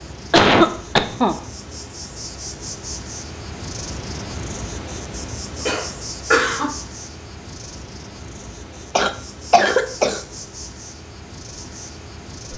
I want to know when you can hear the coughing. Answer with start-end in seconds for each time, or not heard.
0.3-1.4, 5.7-6.8, 8.9-10.2.